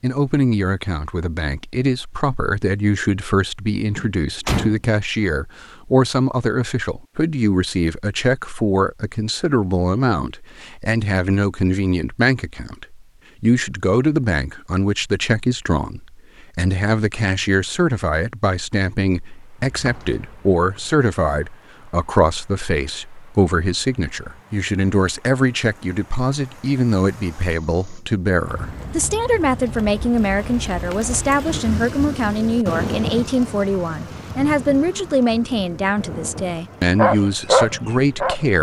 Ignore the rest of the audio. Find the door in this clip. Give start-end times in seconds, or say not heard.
4.0-4.8, 19.6-20.8.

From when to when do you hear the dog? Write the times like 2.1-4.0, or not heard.
37.0-38.5.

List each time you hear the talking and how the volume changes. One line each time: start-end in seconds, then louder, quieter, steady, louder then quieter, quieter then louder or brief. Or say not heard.
0.0-38.5 steady.